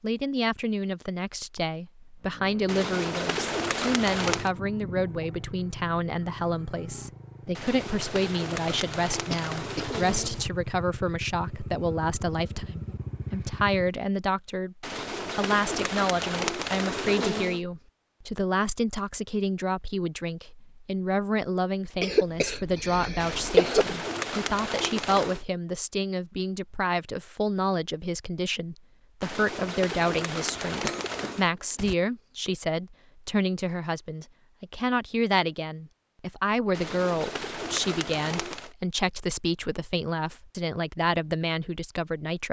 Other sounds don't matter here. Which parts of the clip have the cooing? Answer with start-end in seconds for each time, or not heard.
2.6-4.5, 7.5-10.4, 14.8-17.6, 23.2-25.4, 29.2-31.5, 36.7-38.8.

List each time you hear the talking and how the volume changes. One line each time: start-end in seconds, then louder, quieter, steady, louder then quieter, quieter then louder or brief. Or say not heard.
0.0-42.4 steady.